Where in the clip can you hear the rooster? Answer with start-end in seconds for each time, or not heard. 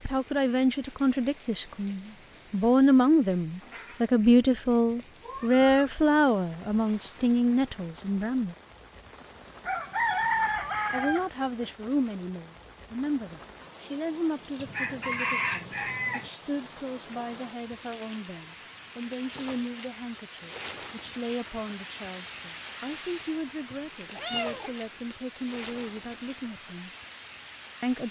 9.7-11.3, 14.6-16.3.